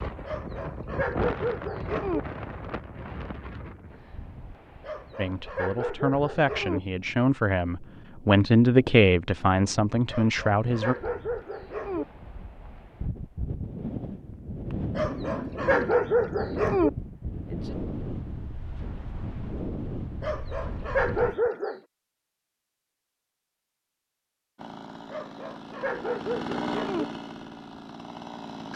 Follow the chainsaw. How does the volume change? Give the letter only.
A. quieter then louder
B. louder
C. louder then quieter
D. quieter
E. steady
C.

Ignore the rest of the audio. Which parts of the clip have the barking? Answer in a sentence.
The barking can be heard from 0.2 to 2.2 s, from 4.8 to 6.8 s, from 10.1 to 12.1 s, from 14.9 to 16.9 s, from 20.2 to 21.8 s and from 25.1 to 27.1 s.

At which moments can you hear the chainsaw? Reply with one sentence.
You can hear the chainsaw from 24.6 to 28.7 s.